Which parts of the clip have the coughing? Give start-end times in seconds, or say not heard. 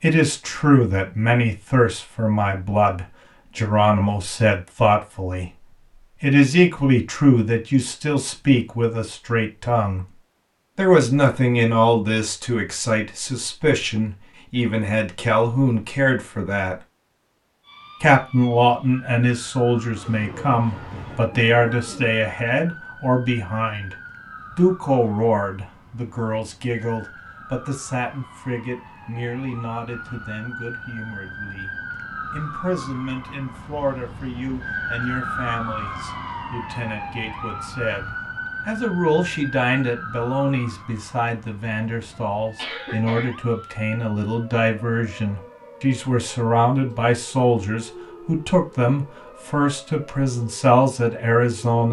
42.1-43.9.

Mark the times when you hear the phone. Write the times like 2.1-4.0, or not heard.
not heard.